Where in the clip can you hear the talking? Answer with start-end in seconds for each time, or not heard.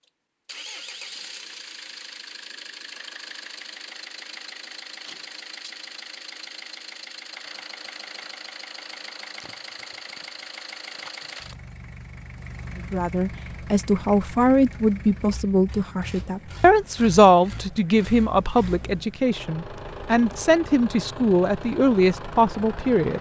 12.8-23.1.